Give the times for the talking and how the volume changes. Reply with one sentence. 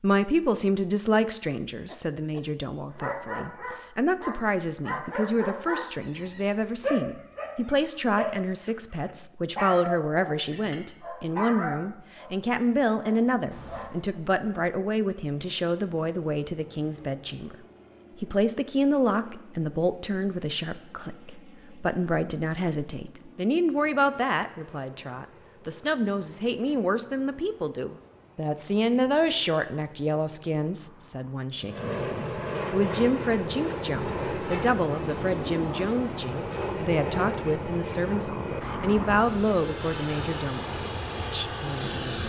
The talking can be heard from 0.0 to 17.6 s, at a steady volume; and from 18.2 to 42.2 s, at a steady volume.